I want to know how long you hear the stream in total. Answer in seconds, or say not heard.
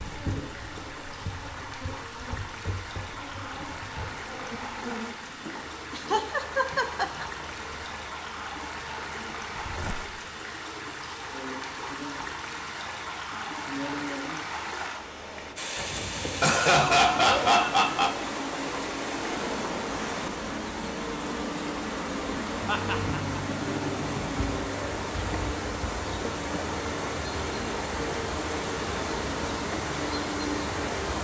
31 s.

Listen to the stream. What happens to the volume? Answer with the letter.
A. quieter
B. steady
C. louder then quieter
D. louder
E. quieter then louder
D.